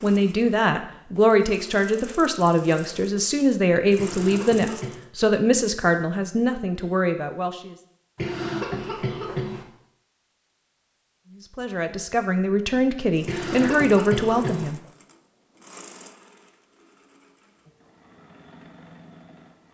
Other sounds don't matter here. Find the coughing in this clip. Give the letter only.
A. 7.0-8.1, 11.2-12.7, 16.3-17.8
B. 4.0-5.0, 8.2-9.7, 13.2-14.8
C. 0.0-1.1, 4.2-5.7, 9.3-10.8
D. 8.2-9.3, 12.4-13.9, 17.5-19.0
B.